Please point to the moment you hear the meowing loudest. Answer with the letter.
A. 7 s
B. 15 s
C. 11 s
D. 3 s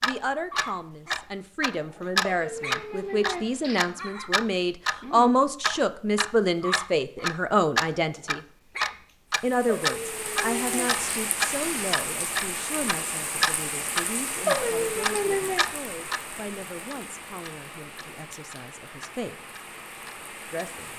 B.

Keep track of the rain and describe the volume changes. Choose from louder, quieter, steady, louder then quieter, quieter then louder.
quieter.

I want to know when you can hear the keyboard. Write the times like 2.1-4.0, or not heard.
not heard.